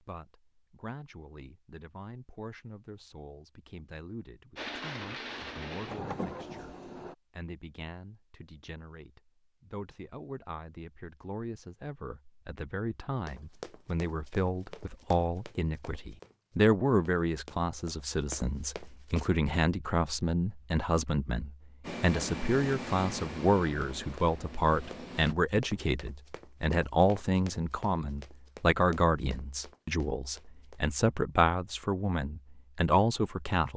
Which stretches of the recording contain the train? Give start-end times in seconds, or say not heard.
4.5-7.2, 21.8-25.4.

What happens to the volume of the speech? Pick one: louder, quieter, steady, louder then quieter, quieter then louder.
louder.